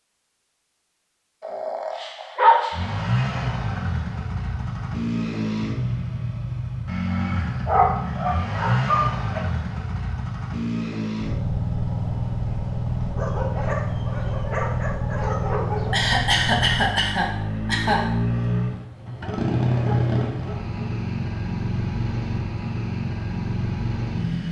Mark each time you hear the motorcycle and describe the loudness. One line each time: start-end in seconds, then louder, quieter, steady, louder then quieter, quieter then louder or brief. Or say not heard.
2.7-24.4 steady.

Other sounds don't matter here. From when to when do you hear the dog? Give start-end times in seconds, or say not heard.
1.4-3.0, 7.7-9.4, 13.2-16.0, 19.1-20.9.